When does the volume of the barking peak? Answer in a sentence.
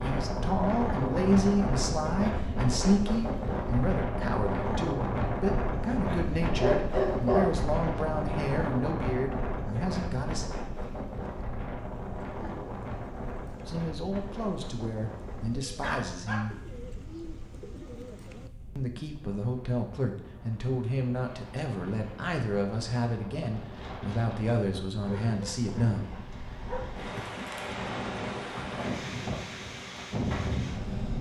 The loudest moment of the barking is at 7 seconds.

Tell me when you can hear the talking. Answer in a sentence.
You can hear the talking from 0.0 to 10.4 s, from 13.7 to 16.6 s and from 18.8 to 26.1 s.